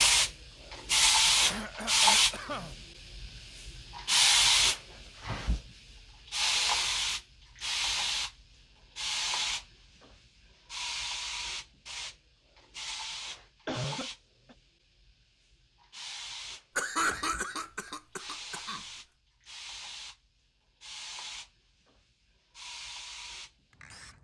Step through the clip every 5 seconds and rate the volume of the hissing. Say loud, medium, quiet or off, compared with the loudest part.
loud, medium, quiet, quiet, quiet.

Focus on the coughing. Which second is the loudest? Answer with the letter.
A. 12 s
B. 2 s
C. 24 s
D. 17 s
D.